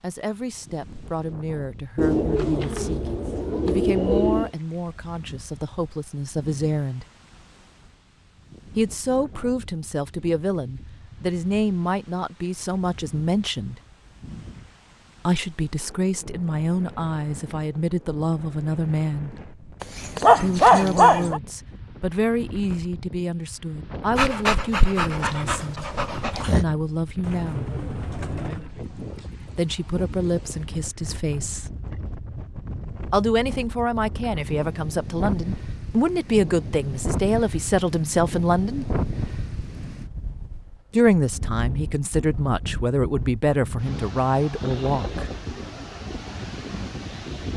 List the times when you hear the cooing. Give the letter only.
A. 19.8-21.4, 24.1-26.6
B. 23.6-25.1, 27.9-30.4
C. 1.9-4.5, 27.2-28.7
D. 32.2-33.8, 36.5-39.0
C.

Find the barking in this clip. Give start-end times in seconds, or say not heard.
19.8-21.4, 24.1-26.6.